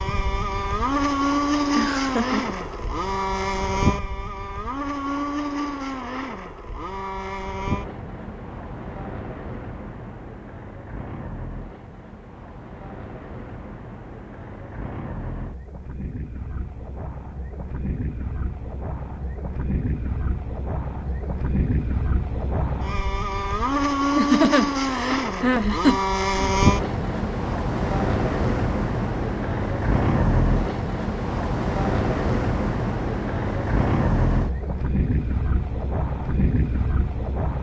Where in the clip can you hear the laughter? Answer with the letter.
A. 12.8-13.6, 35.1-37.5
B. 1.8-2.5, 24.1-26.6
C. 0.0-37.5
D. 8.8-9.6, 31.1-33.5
B.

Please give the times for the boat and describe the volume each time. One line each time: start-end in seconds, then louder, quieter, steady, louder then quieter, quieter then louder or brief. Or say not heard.
0.0-37.5 quieter then louder.